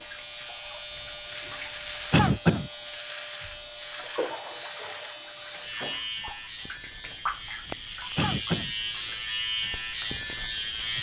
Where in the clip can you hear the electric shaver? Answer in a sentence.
You can hear the electric shaver from 0.0 to 10.9 s.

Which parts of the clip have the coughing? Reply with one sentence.
You can hear the coughing from 2.1 to 2.7 s and from 8.2 to 8.7 s.